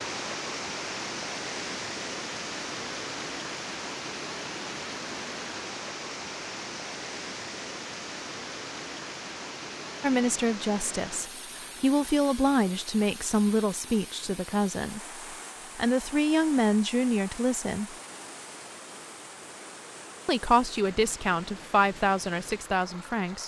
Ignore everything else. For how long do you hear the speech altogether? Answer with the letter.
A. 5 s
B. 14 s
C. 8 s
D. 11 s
D.